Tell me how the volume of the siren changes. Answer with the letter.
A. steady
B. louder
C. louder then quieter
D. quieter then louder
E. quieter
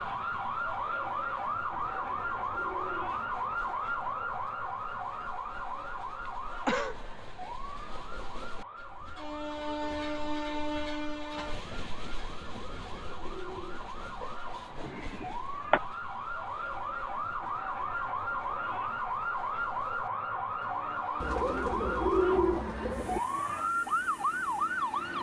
D.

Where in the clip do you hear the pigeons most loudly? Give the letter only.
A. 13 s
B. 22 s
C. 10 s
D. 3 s
B.